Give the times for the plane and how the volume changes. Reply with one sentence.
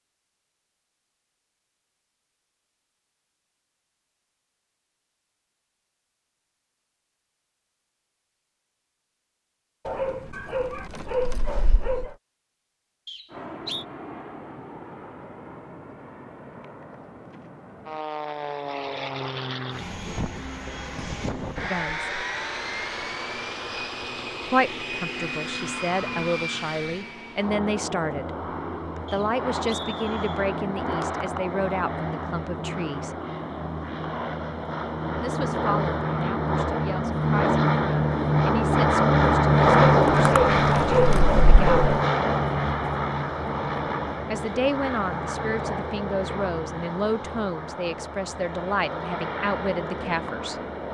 You can hear the plane from 13.3 to 50.8 s, getting louder then quieter.